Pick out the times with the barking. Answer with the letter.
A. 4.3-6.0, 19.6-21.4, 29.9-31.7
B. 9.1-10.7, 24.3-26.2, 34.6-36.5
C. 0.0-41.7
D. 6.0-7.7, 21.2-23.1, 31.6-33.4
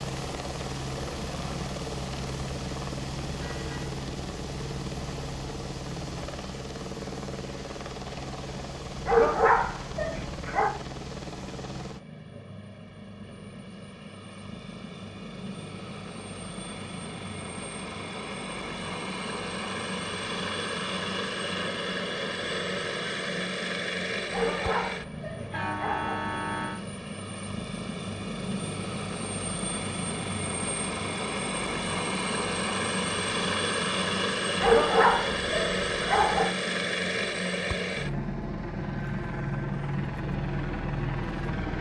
B.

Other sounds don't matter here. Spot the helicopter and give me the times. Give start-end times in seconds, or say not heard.
0.0-41.7.